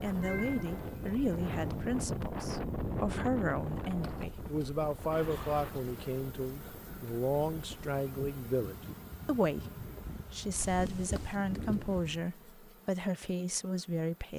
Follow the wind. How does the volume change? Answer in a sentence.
The loudness of the wind goes down, then up.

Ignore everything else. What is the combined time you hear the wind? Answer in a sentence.
You can hear the wind for 12 seconds altogether.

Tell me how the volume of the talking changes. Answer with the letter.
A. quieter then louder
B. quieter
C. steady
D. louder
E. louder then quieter
C.